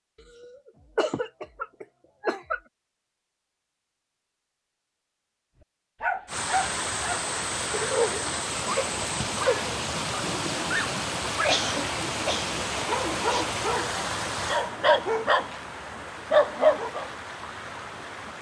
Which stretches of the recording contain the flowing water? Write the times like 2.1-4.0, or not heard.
6.2-18.3.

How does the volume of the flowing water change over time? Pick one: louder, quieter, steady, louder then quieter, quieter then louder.
quieter.